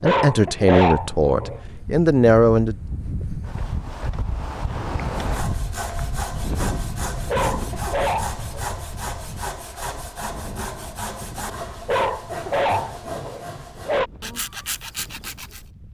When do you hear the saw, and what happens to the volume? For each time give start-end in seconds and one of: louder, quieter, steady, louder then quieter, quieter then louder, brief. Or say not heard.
5.2-15.7 steady.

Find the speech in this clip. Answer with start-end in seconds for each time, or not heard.
0.0-2.8.